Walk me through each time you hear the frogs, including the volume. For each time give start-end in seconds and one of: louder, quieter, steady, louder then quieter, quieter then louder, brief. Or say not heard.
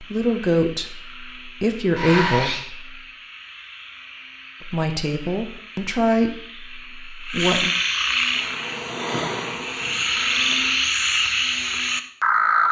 0.0-12.6 louder.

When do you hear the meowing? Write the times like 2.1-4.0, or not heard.
1.9-2.6.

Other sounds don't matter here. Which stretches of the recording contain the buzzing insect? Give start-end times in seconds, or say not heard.
8.3-10.8.